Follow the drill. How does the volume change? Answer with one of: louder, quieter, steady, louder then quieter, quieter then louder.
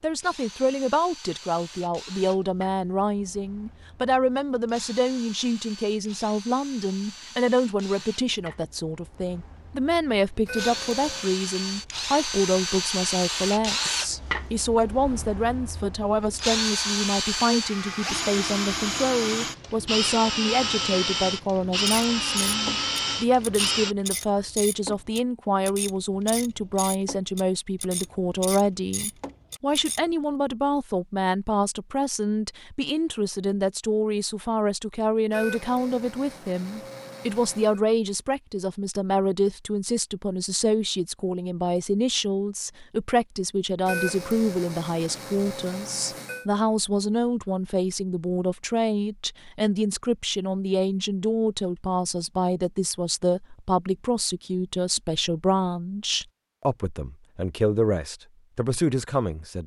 louder.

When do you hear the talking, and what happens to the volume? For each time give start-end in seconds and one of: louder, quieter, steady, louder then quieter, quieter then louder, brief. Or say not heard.
0.0-59.6 steady.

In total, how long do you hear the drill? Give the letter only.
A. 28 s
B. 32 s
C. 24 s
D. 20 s
C.